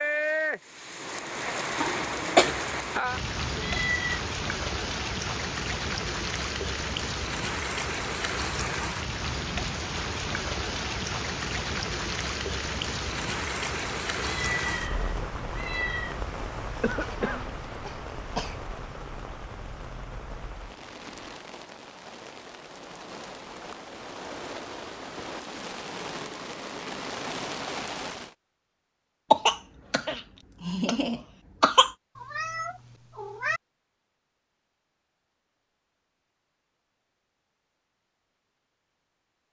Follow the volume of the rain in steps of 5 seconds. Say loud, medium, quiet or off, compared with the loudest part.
loud, loud, loud, medium, medium, medium, off, off.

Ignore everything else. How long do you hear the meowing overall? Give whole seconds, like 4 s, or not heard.
4 s.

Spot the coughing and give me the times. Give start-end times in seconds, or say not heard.
1.8-2.5, 16.8-18.6, 29.3-31.9.